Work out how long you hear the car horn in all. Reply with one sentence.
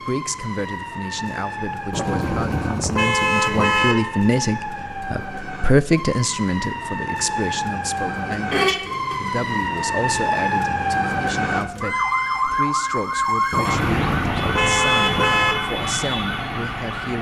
You can hear the car horn for 5 seconds altogether.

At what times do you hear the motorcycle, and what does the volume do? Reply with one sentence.
The motorcycle can't be heard in this clip.